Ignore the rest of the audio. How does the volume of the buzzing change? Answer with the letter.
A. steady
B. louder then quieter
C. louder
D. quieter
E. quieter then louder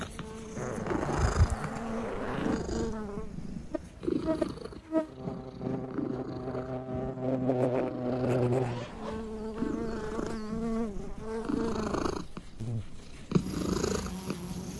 B.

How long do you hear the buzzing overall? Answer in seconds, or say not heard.
15 s.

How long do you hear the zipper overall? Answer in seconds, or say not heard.
3 s.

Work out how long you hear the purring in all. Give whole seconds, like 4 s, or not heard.
15 s.